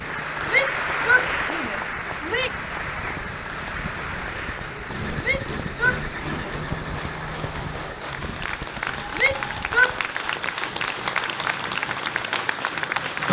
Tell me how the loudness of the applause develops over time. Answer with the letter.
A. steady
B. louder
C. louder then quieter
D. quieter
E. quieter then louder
E.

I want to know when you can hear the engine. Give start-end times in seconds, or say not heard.
0.0-13.2.